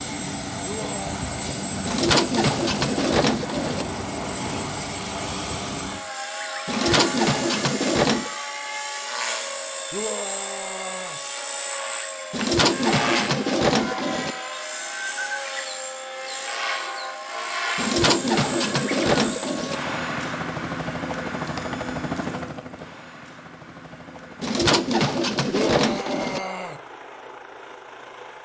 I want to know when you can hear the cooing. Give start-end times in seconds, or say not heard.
1.9-3.9, 6.7-8.3, 12.3-14.3, 17.8-19.8, 24.4-26.4.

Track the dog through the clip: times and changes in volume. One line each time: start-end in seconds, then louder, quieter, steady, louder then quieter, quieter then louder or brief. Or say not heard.
not heard.